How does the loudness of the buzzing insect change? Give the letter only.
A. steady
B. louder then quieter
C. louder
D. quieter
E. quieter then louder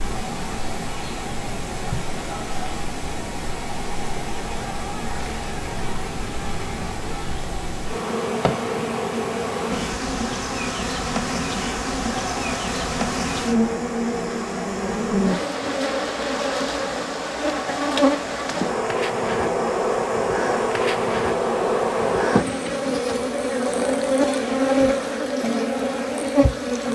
C.